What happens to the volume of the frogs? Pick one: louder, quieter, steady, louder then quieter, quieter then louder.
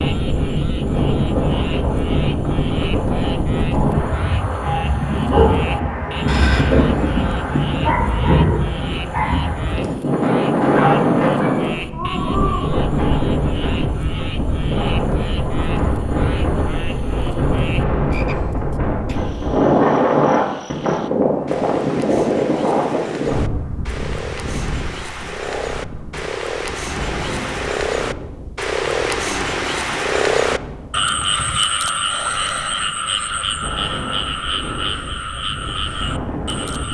louder.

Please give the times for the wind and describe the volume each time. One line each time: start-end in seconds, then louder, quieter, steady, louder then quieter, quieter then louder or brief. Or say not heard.
0.0-36.9 quieter.